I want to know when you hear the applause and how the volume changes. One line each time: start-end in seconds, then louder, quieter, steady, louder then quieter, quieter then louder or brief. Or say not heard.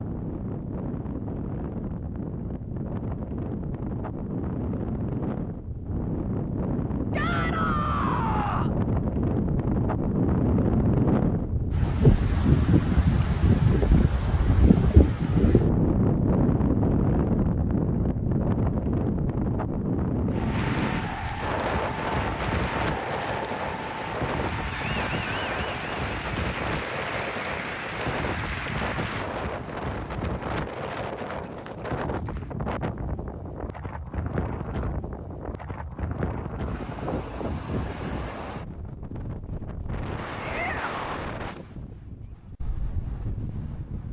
20.3-32.5 quieter.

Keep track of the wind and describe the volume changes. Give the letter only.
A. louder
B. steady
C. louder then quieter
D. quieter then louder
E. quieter
C.